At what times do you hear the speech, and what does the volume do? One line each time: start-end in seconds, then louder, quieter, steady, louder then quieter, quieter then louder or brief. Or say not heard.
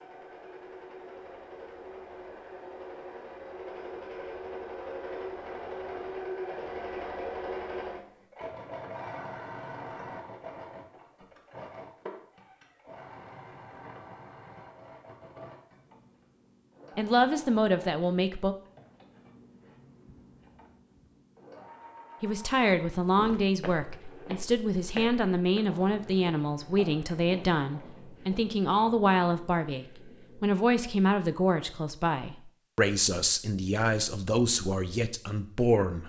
16.9-18.6 brief
22.2-36.0 steady.